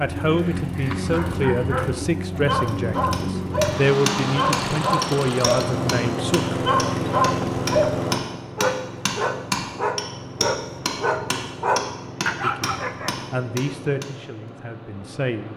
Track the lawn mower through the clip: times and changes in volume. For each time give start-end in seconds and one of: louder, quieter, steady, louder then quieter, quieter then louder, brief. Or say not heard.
0.0-15.5 quieter.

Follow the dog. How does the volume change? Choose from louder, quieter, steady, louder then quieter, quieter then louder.
louder.